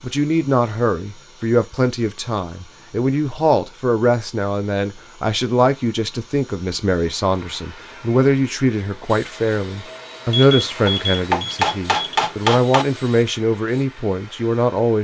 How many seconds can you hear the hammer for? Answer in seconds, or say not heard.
2 s.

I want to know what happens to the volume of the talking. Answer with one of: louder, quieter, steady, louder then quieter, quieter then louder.
steady.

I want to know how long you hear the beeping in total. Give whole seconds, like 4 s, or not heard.
2 s.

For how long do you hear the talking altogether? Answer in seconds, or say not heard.
15 s.